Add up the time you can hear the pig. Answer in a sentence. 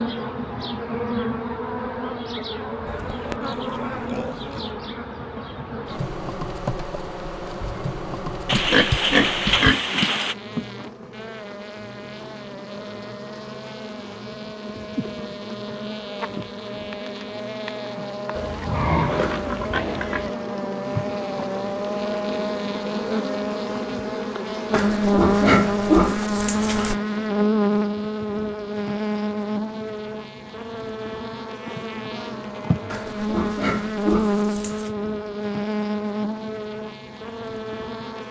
The pig can be heard for 10 seconds in total.